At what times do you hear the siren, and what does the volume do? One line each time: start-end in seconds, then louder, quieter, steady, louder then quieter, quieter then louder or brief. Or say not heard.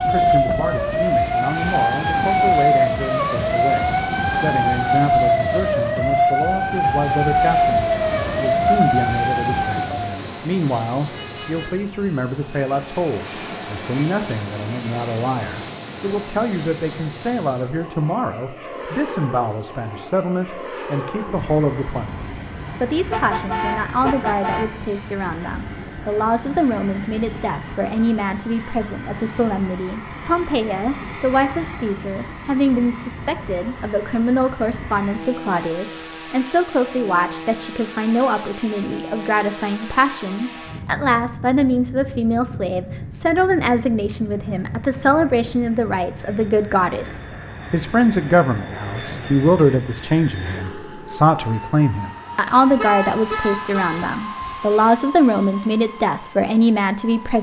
0.0-10.2 steady.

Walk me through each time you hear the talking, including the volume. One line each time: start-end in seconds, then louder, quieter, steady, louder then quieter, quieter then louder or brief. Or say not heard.
0.1-57.3 louder.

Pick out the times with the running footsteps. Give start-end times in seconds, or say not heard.
not heard.